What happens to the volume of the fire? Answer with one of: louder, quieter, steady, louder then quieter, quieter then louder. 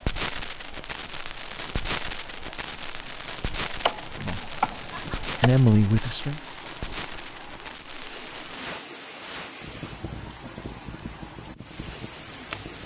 quieter.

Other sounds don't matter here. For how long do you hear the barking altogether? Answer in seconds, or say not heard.
not heard.